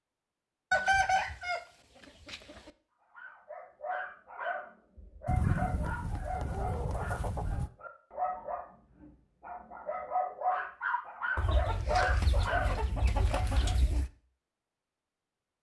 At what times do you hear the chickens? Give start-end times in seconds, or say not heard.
0.7-1.6, 2.2-2.7, 5.2-7.7, 11.3-14.1.